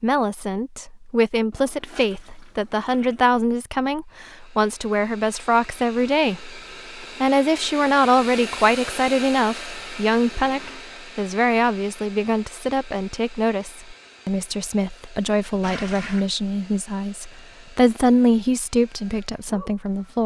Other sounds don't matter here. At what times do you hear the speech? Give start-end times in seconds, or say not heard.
0.0-20.2.